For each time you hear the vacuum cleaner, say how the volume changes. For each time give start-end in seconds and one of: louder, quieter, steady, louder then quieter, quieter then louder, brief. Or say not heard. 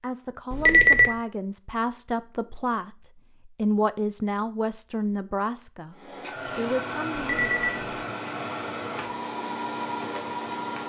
5.9-10.8 steady.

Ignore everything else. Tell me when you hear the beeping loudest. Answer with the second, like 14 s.
1 s.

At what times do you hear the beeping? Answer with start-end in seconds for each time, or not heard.
0.5-1.1, 7.2-7.9.